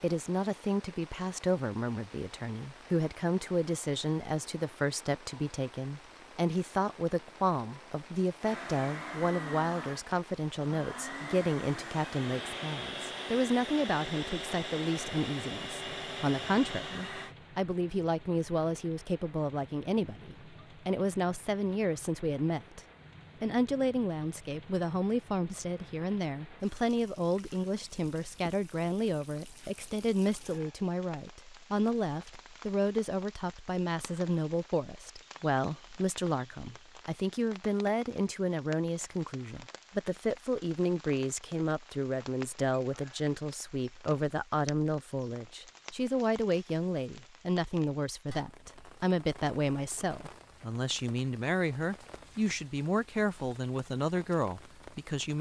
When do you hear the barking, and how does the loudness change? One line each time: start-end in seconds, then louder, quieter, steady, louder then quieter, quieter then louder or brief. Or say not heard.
not heard.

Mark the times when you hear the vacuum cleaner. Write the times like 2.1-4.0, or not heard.
8.4-17.4.